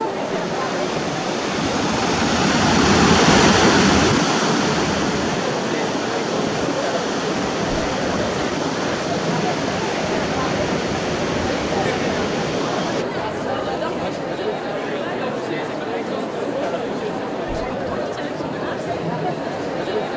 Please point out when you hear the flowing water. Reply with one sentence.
You can hear the flowing water from 0.0 to 13.1 s.